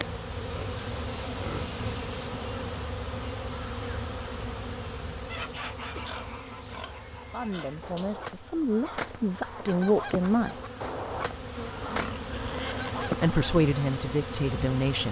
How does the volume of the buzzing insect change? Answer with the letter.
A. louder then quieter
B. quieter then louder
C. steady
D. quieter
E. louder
B.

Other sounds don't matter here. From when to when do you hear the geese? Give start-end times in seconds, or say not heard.
5.2-13.4.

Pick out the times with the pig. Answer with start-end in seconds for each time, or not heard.
0.3-3.0, 6.0-8.2, 11.8-12.9.